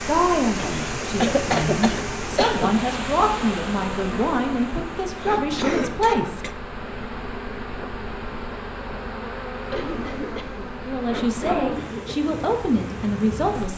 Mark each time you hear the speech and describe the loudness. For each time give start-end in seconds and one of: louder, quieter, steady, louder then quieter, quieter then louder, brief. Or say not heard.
0.0-6.4 steady
10.8-13.7 brief.